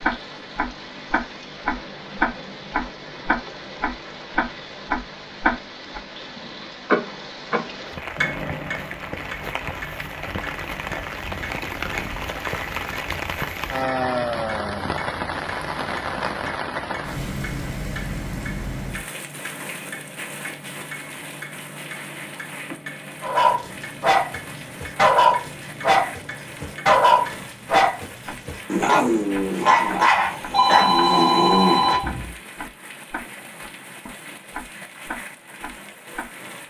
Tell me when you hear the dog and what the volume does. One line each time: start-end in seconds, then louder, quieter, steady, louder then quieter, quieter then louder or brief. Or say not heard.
23.2-32.3 steady.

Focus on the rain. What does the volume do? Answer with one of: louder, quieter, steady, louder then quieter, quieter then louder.
louder then quieter.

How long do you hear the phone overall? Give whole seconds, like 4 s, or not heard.
2 s.